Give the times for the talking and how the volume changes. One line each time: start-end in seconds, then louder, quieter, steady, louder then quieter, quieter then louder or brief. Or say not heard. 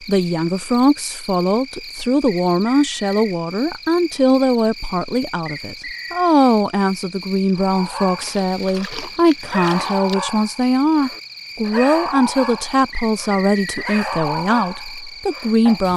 0.1-15.9 steady.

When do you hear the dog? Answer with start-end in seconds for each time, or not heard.
7.5-15.8.